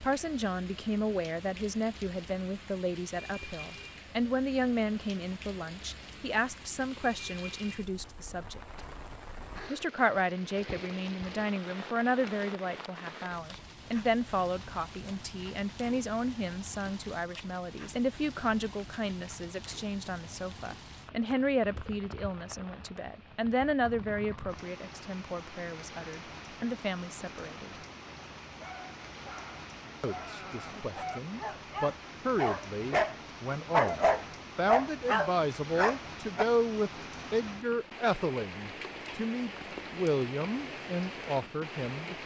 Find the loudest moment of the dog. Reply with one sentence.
The volume of the dog peaks at 34 seconds.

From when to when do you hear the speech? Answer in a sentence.
You can hear the speech from 0.0 to 8.8 s, from 9.7 to 27.7 s and from 30.0 to 42.2 s.